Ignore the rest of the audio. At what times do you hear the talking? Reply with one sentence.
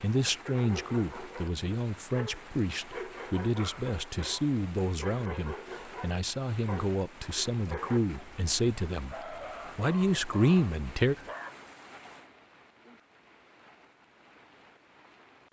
The talking can be heard from 0.0 to 11.2 s.